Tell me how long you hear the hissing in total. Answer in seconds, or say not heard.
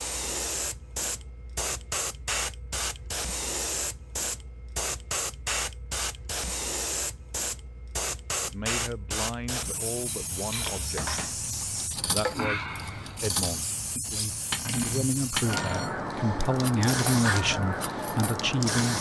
19 s.